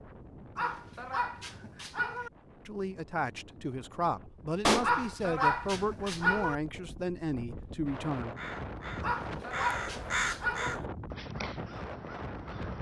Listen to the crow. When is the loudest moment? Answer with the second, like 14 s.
10 s.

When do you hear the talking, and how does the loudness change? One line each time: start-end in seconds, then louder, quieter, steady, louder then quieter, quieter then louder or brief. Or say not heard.
2.6-8.3 steady.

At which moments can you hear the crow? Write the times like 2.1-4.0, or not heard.
8.2-12.7.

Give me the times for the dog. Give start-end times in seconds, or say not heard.
0.6-2.3, 4.8-6.5, 9.0-10.8.